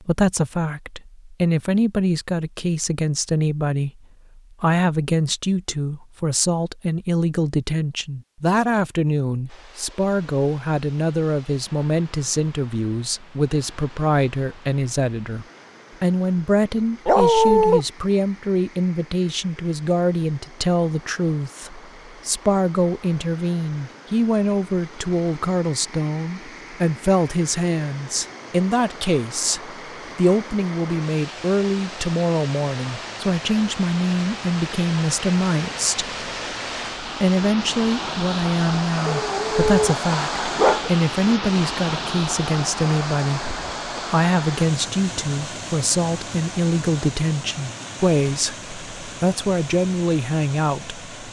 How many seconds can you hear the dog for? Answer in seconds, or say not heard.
3 s.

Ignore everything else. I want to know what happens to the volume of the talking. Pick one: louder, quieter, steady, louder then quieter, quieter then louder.
steady.